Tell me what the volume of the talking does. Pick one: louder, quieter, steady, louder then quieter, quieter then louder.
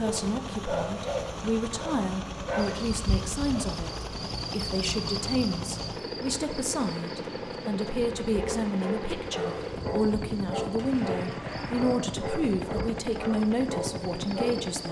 steady.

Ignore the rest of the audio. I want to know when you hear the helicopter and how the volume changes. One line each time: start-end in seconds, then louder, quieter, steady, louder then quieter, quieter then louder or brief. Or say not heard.
0.0-14.8 steady.